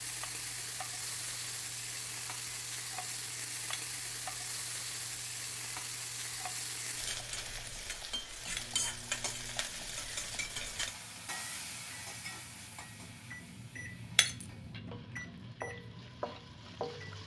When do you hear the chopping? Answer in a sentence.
The chopping can't be heard in this clip.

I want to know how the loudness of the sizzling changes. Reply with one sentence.
The volume of the sizzling goes down.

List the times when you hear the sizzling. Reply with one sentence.
You can hear the sizzling from 0.0 to 17.2 s.